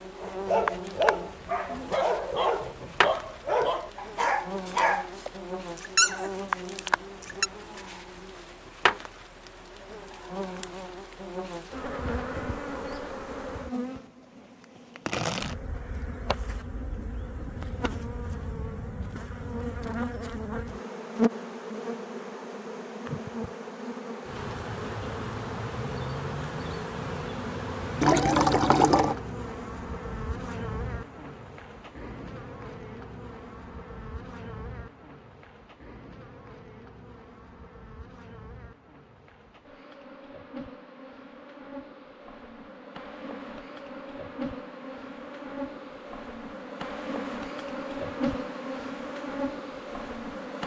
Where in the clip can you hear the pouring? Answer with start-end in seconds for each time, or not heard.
28.0-29.1.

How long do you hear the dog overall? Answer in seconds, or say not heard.
7 s.